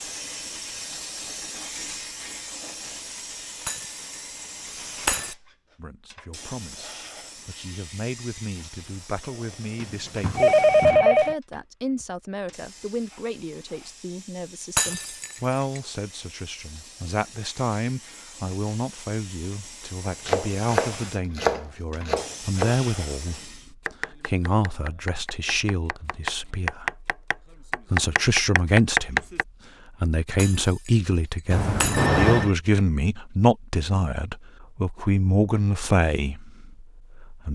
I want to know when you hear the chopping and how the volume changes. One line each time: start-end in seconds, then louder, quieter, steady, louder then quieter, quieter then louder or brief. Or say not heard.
20.1-29.4 quieter then louder.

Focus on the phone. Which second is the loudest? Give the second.
11 s.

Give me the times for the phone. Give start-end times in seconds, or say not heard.
9.8-11.3, 31.5-32.5.